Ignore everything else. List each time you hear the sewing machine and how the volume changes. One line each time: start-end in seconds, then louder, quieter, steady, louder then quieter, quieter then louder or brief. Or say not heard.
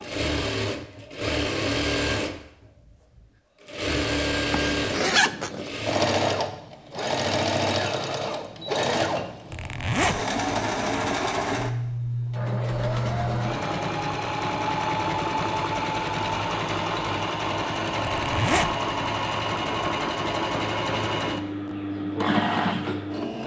0.0-23.4 steady.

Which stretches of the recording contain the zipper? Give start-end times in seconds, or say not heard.
4.5-5.7, 9.5-10.2, 18.0-18.8.